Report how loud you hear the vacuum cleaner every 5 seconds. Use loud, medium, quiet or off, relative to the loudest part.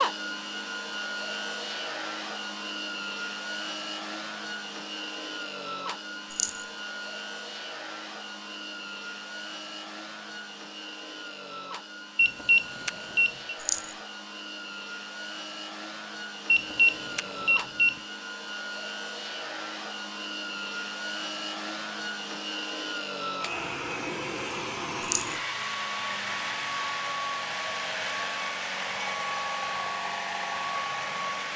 loud, medium, medium, medium, loud, loud, loud.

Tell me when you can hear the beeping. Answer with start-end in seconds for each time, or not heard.
12.2-13.6, 16.4-18.0.